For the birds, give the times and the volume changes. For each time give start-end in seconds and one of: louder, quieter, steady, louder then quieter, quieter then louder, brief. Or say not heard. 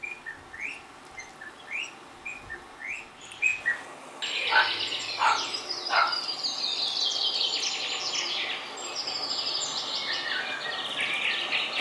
0.0-11.7 louder.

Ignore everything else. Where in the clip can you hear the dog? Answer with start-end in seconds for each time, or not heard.
4.5-6.2.